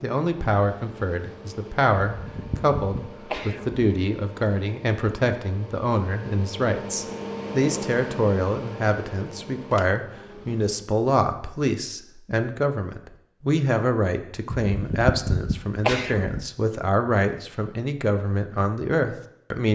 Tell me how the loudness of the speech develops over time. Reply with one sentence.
The loudness of the speech stays about the same.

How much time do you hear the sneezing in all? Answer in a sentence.
The sneezing can be heard for 4 seconds in total.